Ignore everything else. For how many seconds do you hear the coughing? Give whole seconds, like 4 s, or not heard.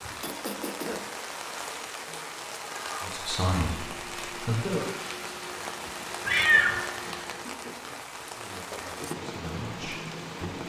3 s.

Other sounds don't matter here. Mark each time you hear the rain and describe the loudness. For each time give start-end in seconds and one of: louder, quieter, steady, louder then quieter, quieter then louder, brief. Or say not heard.
0.0-10.6 steady.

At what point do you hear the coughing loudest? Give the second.
1 s.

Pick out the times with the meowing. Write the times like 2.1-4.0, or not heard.
2.0-3.1, 6.2-6.8.